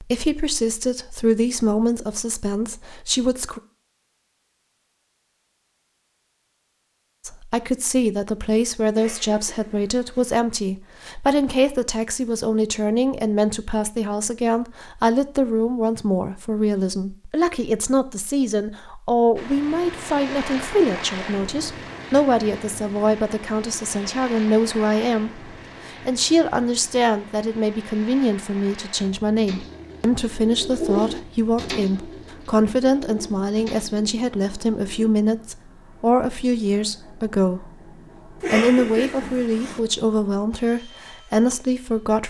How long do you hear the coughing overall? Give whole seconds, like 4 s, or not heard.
3 s.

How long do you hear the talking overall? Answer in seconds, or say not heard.
38 s.